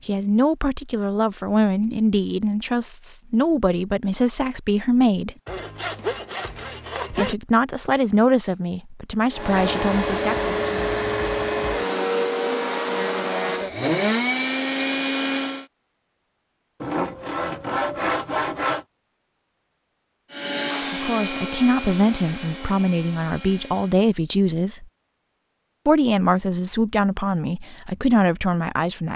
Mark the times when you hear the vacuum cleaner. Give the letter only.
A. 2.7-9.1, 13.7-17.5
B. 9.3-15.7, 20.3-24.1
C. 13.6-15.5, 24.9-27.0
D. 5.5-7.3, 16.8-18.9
B.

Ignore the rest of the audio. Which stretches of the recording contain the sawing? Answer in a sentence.
You can hear the sawing from 5.5 to 7.3 s and from 16.8 to 18.9 s.